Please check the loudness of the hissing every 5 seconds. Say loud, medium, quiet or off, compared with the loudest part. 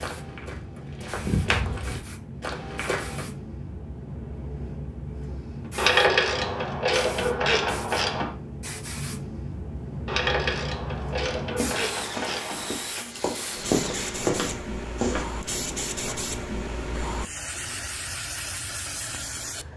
medium, loud, loud, loud.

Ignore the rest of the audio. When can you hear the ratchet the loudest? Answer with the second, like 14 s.
6 s.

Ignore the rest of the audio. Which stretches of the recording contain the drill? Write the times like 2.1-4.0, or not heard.
11.8-14.2.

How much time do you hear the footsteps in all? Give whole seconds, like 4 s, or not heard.
7 s.